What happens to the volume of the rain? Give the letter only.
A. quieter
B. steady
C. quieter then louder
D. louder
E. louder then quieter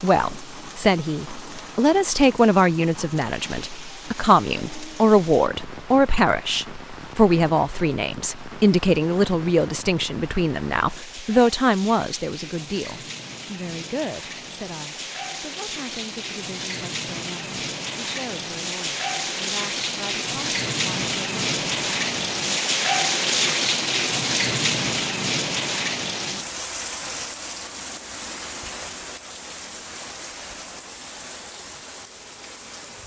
E.